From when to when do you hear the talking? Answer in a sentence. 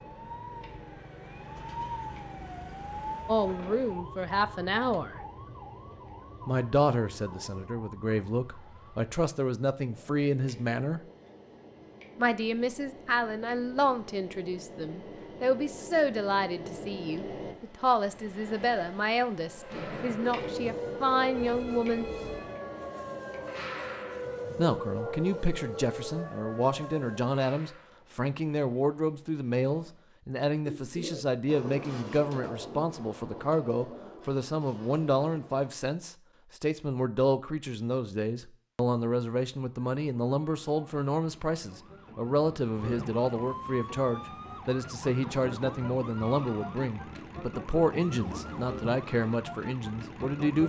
The talking can be heard from 3.2 to 5.2 s, from 6.5 to 11.0 s, from 12.2 to 22.1 s and from 24.6 to 50.6 s.